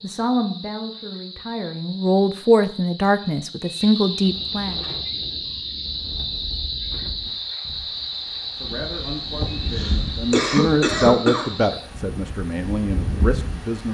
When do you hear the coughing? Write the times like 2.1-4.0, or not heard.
9.4-11.5.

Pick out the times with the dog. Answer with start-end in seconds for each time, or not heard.
not heard.